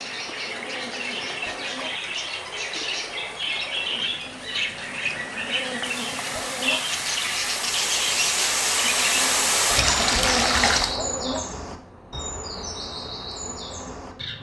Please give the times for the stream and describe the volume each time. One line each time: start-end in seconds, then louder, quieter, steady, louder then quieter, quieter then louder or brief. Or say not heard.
0.0-10.9 louder.